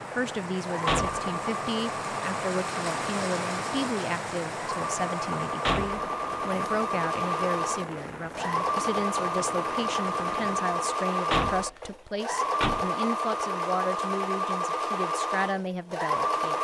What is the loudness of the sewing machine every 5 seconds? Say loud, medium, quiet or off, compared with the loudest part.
medium, loud, loud, loud.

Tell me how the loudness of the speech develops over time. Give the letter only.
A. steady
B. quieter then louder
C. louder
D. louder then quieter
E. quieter
A.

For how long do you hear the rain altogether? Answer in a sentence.
The rain can be heard for 11 seconds in total.